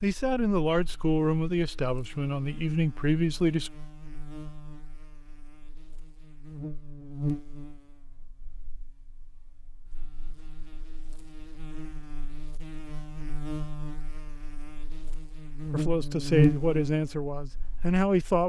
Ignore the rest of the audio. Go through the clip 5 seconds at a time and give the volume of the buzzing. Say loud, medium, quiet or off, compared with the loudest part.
quiet, medium, quiet, loud.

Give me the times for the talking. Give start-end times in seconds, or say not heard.
0.0-3.7, 15.7-18.4.